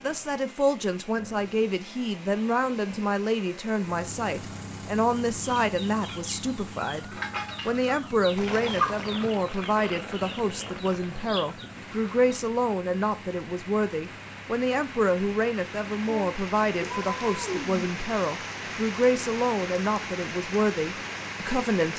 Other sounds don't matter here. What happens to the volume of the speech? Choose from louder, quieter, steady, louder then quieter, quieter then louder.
steady.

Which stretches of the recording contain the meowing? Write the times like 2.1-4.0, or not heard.
16.1-17.9.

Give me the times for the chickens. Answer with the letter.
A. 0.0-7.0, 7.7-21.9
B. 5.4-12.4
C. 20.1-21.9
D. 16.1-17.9
B.